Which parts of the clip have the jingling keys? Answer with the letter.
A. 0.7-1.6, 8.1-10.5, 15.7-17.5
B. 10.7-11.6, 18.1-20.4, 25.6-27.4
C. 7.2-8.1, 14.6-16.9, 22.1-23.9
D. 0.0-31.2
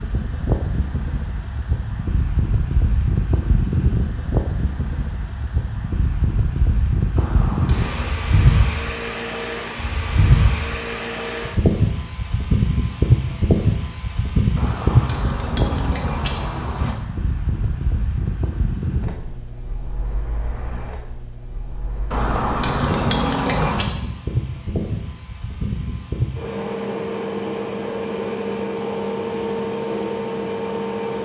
C.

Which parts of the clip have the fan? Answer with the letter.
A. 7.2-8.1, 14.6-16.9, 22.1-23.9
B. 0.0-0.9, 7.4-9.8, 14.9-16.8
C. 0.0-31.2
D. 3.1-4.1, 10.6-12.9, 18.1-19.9
C.